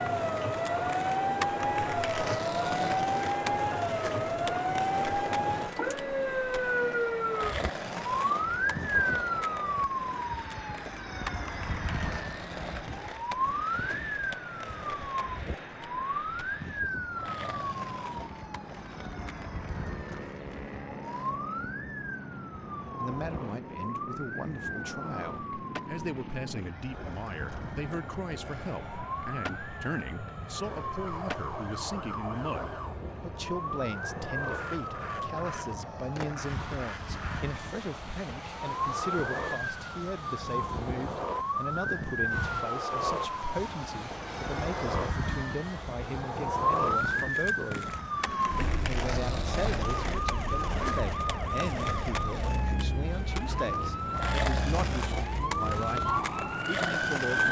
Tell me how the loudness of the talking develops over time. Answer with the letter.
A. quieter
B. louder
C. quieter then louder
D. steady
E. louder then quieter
D.